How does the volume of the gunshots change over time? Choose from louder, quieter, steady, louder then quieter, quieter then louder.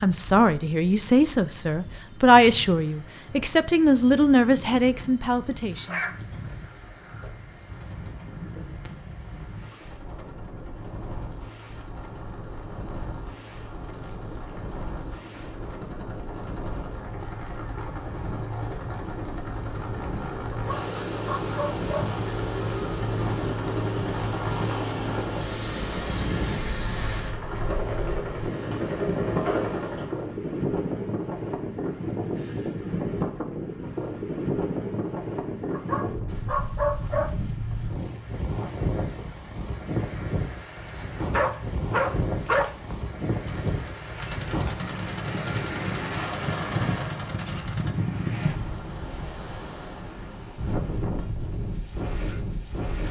steady.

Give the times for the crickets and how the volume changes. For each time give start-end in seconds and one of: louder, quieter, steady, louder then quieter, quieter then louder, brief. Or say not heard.
not heard.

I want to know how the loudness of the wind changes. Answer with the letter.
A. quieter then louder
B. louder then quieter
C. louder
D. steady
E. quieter
C.